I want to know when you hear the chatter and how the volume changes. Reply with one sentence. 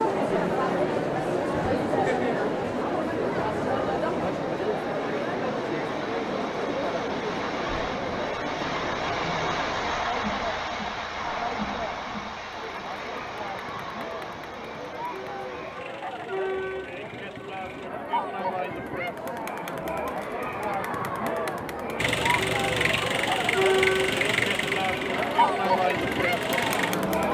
You can hear the chatter from 0.0 to 27.2 s, getting quieter then louder.